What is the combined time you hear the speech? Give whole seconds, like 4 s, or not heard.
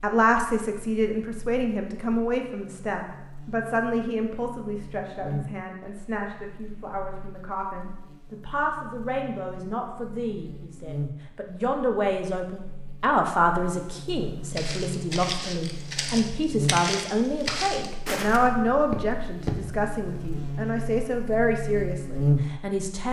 23 s.